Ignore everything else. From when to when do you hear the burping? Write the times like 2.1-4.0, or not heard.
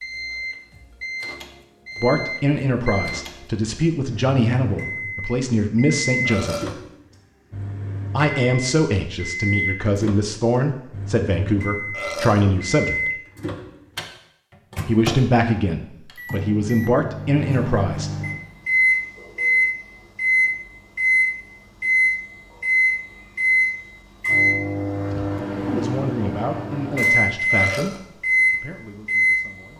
6.2-6.8, 11.9-12.4, 27.4-28.0.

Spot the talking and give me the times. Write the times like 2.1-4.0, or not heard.
2.0-6.7, 8.1-13.1, 14.8-18.2, 25.1-29.7.